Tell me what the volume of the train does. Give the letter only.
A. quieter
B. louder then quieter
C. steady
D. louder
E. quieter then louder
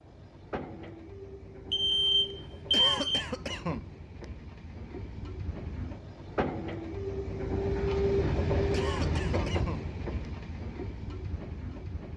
B.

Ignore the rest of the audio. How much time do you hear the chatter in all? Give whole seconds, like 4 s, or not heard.
not heard.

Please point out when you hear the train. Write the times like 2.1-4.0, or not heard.
0.0-12.1.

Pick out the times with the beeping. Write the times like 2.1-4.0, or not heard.
1.7-3.2.